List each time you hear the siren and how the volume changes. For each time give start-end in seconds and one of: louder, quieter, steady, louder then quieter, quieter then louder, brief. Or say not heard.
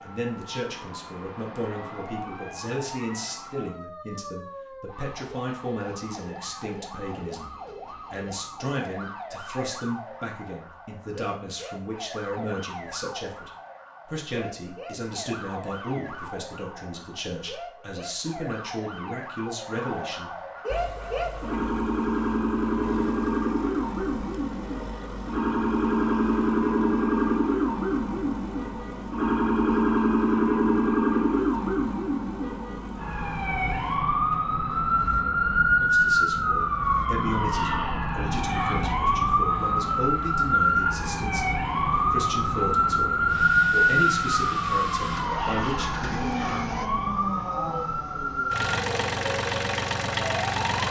0.0-50.6 louder.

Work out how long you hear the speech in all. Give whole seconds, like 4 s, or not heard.
31 s.